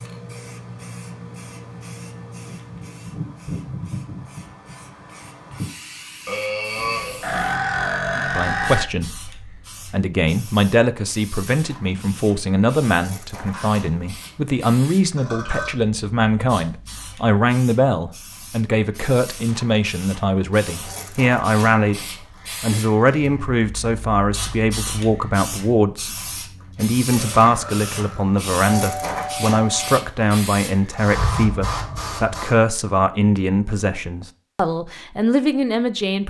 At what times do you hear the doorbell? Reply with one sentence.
The doorbell can be heard from 28.8 to 30.0 s.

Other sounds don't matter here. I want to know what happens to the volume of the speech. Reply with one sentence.
The loudness of the speech stays about the same.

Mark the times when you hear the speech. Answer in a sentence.
The speech can be heard from 8.2 to 26.1 s and from 26.8 to 36.2 s.